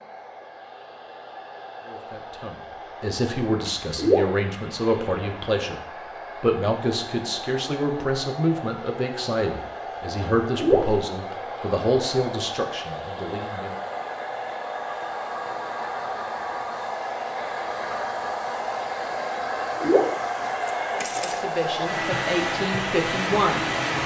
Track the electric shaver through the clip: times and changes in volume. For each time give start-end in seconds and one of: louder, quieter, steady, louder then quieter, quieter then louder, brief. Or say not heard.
not heard.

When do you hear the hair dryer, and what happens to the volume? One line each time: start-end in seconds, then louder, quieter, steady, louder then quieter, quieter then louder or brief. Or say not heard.
0.0-24.0 louder.